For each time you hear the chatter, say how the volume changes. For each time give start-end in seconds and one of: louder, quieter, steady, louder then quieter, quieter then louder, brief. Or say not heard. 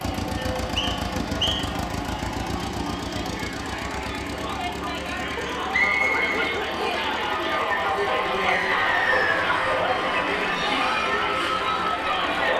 0.0-12.5 louder.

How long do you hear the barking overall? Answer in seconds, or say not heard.
2 s.